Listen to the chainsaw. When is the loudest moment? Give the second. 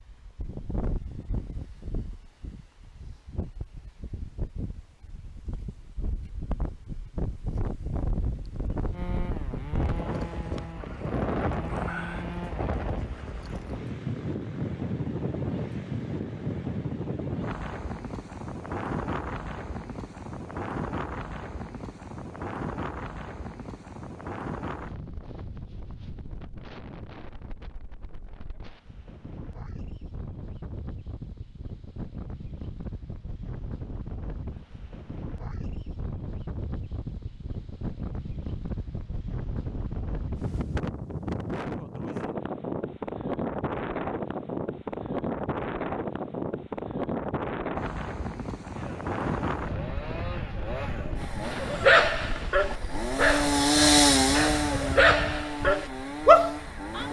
54 s.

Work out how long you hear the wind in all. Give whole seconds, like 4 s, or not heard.
57 s.